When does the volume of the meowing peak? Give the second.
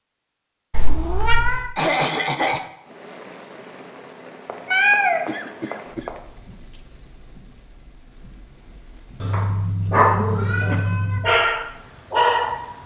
5 s.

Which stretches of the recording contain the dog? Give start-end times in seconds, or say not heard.
9.3-12.7.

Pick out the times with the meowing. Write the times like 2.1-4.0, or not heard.
0.7-1.7, 4.5-6.1, 9.2-11.2.